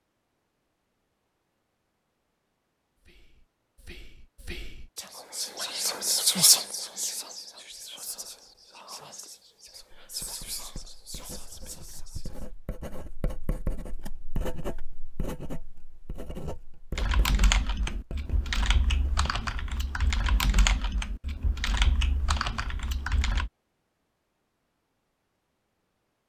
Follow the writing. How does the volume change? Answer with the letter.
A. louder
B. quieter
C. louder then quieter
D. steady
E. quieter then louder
C.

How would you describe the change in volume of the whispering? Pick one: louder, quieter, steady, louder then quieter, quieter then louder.
louder then quieter.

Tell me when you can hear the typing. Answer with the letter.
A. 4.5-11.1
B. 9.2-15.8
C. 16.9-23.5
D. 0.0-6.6
C.